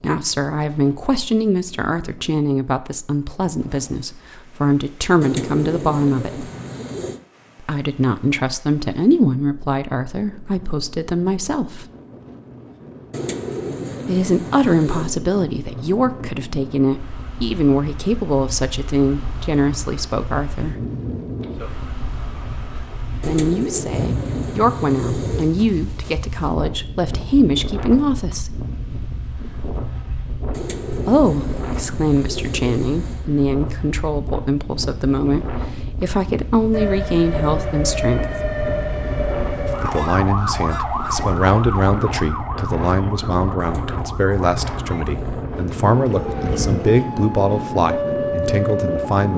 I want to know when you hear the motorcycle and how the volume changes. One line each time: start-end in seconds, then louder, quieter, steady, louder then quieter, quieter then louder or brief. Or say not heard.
not heard.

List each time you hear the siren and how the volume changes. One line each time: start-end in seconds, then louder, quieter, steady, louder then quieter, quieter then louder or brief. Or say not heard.
36.7-49.2 quieter then louder.